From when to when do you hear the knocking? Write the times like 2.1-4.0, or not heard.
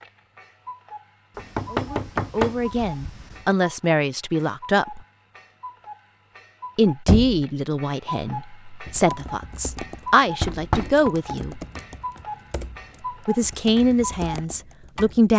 1.4-3.5, 7.0-7.5, 10.4-11.1.